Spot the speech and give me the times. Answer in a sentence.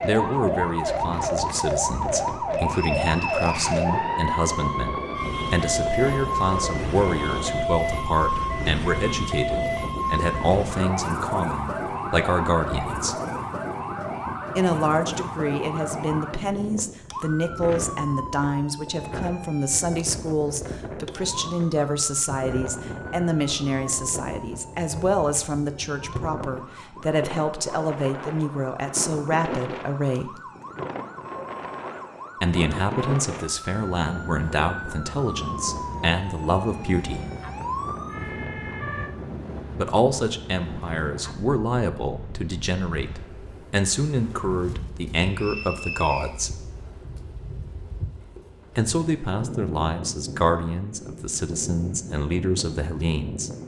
You can hear the speech from 0.0 to 13.2 s, from 14.6 to 30.4 s, from 32.4 to 37.2 s, from 39.8 to 46.6 s and from 48.8 to 53.5 s.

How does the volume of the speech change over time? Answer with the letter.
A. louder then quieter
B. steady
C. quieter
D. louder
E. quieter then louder
B.